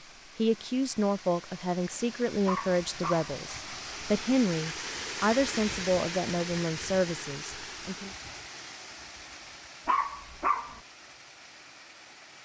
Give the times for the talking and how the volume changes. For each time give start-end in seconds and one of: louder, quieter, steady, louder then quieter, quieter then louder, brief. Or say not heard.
0.3-8.1 steady.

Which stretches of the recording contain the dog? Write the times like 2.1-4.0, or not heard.
2.5-3.3, 9.8-10.8.